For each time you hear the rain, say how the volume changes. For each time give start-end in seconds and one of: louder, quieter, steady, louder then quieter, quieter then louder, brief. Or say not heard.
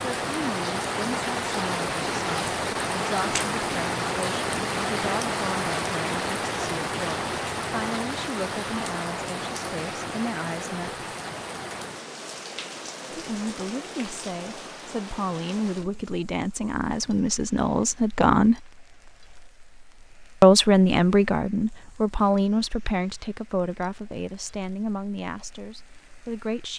0.0-26.7 quieter.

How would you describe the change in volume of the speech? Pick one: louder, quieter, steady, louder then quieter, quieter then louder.
louder then quieter.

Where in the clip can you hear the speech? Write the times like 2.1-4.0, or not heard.
0.2-11.1, 13.1-18.6, 20.4-26.7.